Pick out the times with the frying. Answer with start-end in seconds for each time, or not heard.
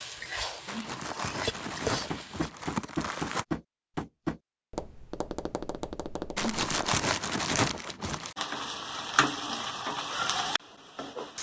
0.0-2.5, 8.3-11.3.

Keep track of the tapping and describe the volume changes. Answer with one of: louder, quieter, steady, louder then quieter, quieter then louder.
quieter.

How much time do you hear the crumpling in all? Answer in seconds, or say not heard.
5 s.